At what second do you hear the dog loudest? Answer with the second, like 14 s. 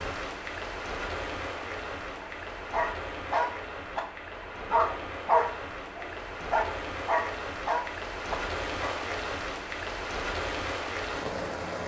5 s.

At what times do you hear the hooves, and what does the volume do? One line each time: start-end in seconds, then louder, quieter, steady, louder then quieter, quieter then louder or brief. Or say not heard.
not heard.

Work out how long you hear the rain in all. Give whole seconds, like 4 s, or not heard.
12 s.